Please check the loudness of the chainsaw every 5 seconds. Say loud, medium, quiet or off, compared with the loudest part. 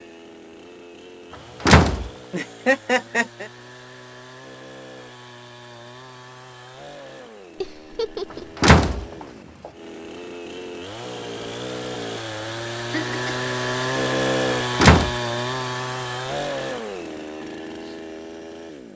quiet, quiet, loud, loud.